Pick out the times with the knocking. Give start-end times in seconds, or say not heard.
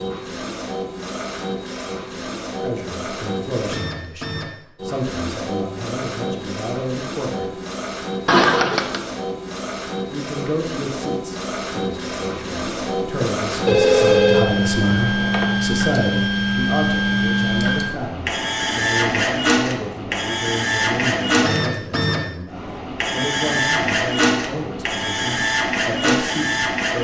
not heard.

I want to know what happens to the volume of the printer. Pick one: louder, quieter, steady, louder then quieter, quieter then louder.
louder.